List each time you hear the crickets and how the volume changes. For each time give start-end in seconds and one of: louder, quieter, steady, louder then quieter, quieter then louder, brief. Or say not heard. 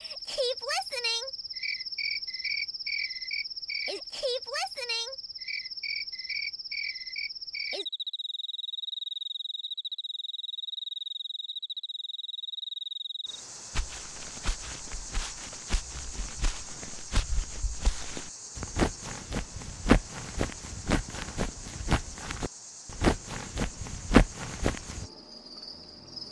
0.0-26.2 quieter.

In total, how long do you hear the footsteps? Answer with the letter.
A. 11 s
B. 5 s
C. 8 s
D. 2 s
A.